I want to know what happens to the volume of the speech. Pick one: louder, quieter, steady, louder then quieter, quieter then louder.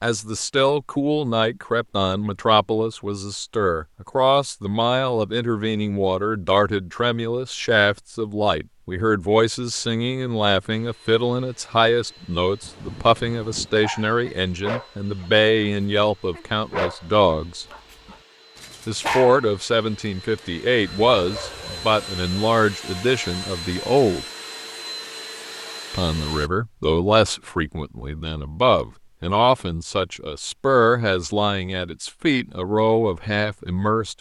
steady.